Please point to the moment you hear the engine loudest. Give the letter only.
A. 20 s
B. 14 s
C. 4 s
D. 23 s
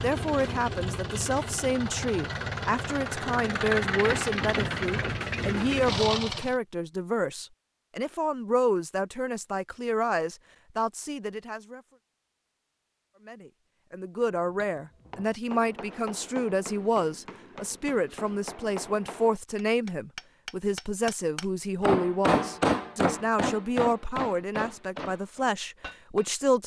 C.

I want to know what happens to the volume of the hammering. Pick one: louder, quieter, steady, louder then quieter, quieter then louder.
louder then quieter.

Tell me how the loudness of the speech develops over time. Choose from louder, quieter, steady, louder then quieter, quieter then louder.
steady.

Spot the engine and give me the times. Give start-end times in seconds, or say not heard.
0.0-6.5.